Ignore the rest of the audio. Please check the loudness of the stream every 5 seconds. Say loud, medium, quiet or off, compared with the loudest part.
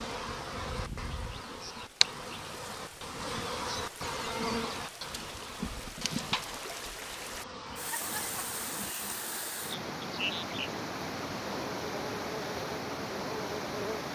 medium, loud, loud.